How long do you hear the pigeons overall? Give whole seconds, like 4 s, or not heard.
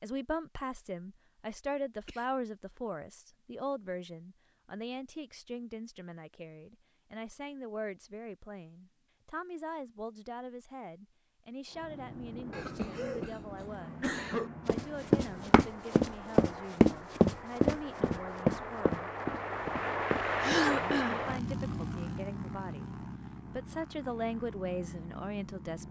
not heard.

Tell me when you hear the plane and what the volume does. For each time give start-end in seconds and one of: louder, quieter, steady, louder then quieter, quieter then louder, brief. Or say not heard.
11.7-25.8 louder then quieter.